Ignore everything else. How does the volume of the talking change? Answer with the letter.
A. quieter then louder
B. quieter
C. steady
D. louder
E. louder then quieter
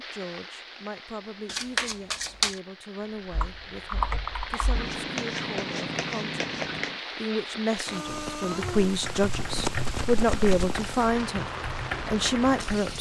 D.